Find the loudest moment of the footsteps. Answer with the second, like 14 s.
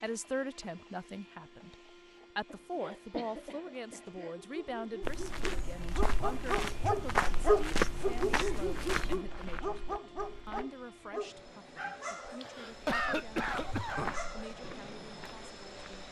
8 s.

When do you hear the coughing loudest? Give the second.
13 s.